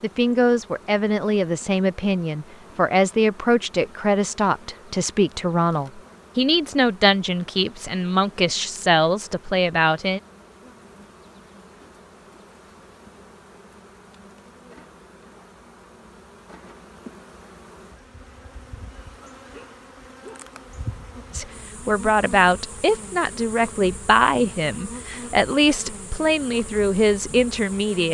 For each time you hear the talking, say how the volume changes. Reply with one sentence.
The talking can be heard from 0.0 to 10.2 s, at a steady volume; and from 21.3 to 28.0 s, at a steady volume.